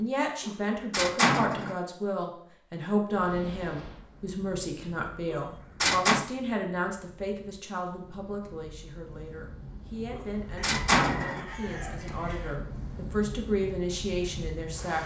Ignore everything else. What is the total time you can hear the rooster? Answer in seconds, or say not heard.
2 s.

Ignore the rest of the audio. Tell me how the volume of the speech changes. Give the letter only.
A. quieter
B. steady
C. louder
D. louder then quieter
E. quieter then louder
E.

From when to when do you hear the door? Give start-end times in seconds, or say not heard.
0.5-1.8, 5.3-6.2, 10.1-11.4.